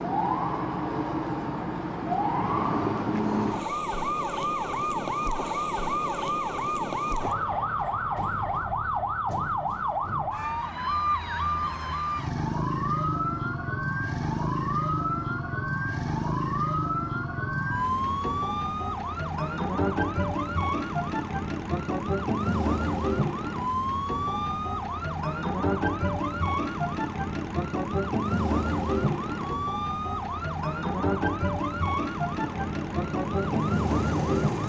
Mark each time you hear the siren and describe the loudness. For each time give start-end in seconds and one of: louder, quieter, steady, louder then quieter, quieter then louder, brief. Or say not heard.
0.0-34.6 steady.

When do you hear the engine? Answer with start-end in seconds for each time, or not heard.
32.4-34.6.